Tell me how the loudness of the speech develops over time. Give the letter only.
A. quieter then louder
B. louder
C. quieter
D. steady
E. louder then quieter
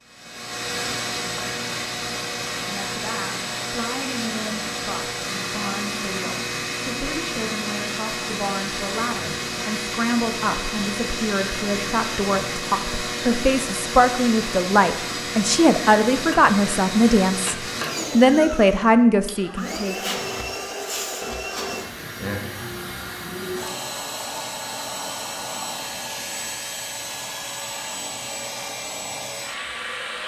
B.